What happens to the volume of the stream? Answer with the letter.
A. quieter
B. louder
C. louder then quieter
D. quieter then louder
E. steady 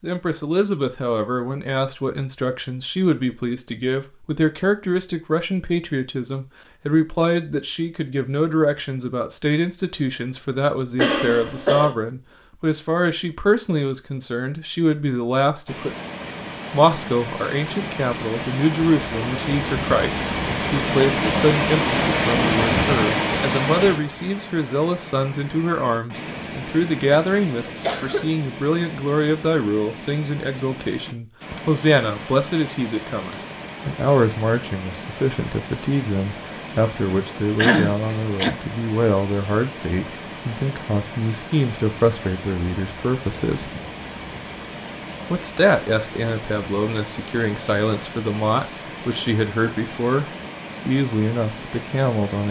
A.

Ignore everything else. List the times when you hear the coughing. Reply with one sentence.
The coughing can be heard from 10.9 to 11.9 s, from 27.1 to 28.3 s and from 37.5 to 38.5 s.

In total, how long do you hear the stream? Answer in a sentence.
The stream can be heard for 37 seconds in total.